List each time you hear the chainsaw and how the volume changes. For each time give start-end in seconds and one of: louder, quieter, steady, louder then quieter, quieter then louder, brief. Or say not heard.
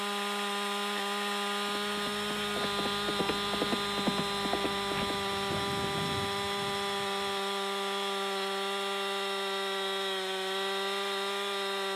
0.0-11.9 steady.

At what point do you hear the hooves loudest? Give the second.
4 s.